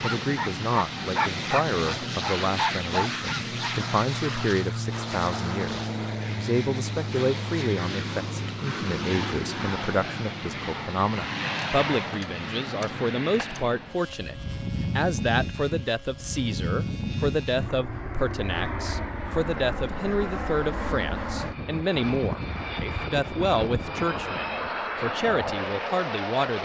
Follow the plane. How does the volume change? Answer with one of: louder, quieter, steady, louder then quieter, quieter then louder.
steady.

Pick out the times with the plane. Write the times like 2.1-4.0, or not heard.
0.0-26.6.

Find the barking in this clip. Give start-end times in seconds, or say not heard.
0.0-3.7.